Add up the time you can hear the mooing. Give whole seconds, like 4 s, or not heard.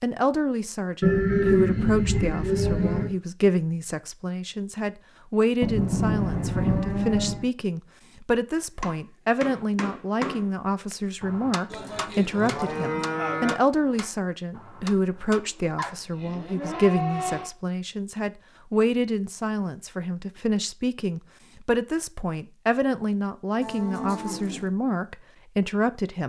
9 s.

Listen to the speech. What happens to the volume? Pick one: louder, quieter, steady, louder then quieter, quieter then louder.
steady.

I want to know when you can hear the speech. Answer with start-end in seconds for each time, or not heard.
0.0-26.2.